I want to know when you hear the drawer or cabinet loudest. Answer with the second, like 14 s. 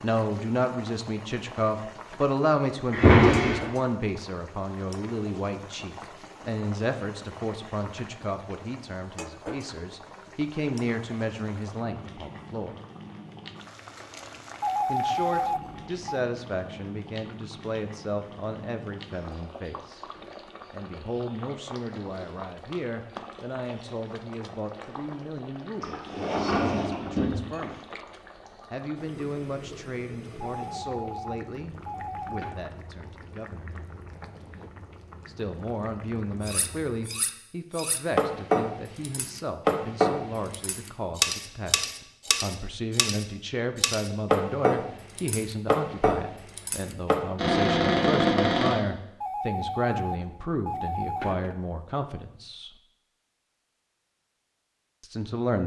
3 s.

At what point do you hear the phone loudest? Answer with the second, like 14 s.
15 s.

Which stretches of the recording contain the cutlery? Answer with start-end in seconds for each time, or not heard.
36.5-47.2.